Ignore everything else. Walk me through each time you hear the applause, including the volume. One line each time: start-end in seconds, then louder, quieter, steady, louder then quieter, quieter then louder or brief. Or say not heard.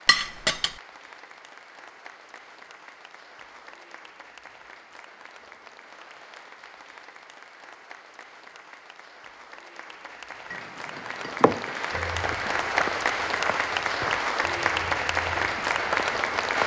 0.0-16.6 louder.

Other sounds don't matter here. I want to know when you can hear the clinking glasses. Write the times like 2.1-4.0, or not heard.
0.1-0.8, 10.5-11.8.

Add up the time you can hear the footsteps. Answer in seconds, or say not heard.
5 s.